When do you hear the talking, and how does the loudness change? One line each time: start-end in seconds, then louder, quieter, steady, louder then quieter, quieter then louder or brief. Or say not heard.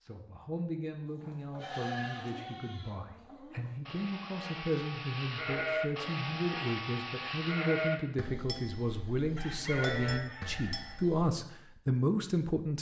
0.0-12.7 louder.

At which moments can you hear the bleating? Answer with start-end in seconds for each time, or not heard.
1.1-11.3.